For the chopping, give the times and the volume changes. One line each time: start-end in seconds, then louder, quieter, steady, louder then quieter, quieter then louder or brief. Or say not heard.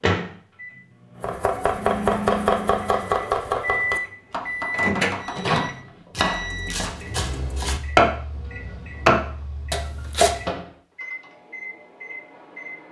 1.2-10.3 quieter then louder.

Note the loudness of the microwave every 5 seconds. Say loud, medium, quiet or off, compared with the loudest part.
loud, loud, medium.